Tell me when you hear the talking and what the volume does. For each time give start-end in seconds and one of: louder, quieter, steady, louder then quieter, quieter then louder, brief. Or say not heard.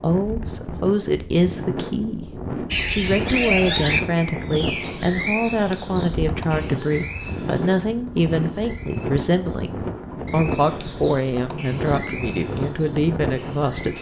0.0-13.9 steady.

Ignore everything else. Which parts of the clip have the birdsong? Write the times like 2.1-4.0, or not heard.
2.7-13.9.